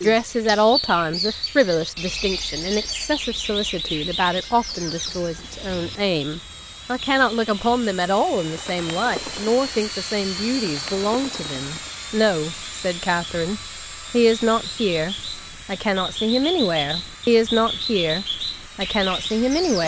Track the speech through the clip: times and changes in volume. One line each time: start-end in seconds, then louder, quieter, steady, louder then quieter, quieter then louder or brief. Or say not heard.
0.0-19.8 steady.